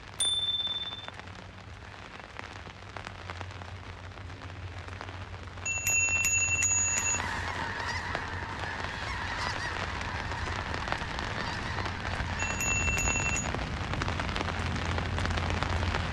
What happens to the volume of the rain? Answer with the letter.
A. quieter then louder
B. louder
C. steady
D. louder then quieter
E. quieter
B.